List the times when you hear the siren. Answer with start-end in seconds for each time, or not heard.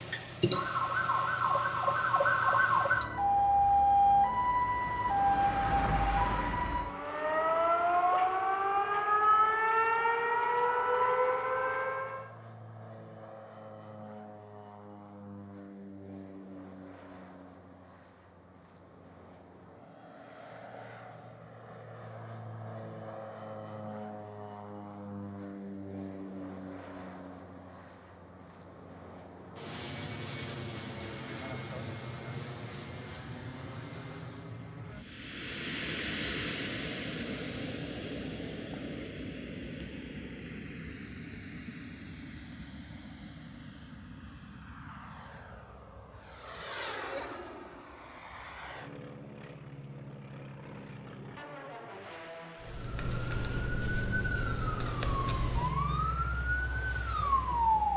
0.0-12.3, 52.6-57.9.